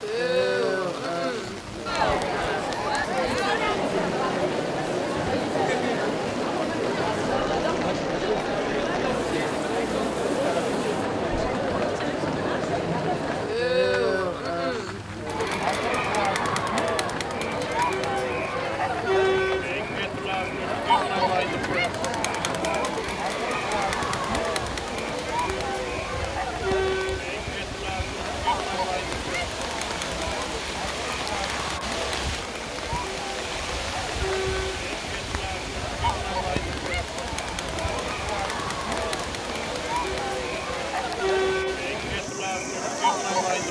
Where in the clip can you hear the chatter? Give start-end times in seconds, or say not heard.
0.0-43.6.